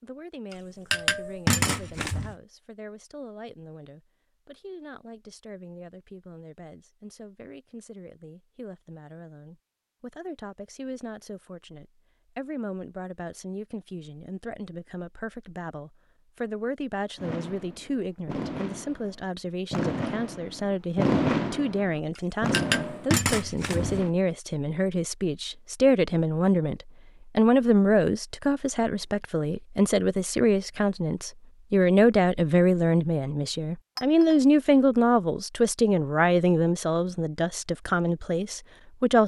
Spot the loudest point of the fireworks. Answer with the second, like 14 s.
21 s.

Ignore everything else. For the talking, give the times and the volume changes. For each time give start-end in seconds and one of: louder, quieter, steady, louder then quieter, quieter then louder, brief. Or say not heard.
0.0-39.2 louder.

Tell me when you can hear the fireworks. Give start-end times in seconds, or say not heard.
17.1-24.1.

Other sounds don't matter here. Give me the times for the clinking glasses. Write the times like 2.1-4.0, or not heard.
0.5-2.4, 22.1-24.0, 34.0-34.4.